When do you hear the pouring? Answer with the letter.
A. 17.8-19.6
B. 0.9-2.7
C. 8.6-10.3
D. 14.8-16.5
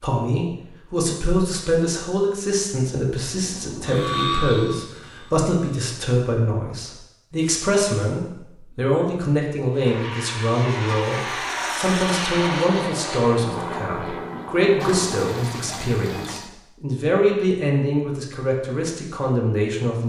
D.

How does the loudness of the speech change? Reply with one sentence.
The loudness of the speech stays about the same.